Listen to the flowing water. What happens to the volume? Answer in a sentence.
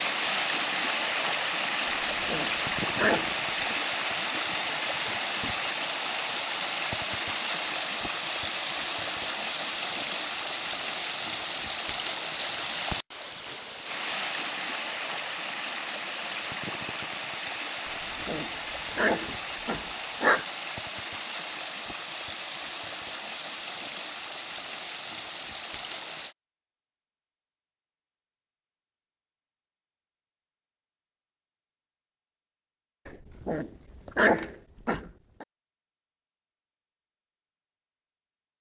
The volume of the flowing water goes down.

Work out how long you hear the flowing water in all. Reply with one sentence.
The flowing water can be heard for 26 seconds in total.